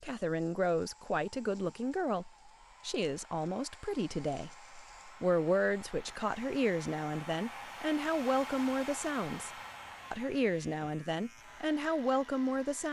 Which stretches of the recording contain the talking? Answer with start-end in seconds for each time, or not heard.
0.0-4.5, 5.2-9.5, 10.1-12.8.